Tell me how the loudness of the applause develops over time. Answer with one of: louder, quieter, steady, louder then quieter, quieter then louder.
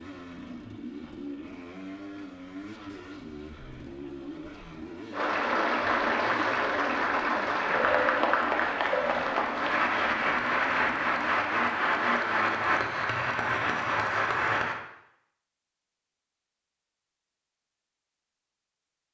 steady.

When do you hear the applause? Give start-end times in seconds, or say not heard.
5.1-14.8.